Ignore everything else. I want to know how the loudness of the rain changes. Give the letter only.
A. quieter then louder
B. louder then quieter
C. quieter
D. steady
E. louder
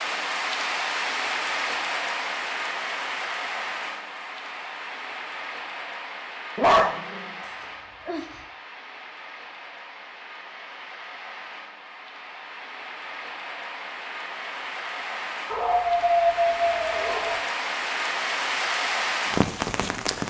A.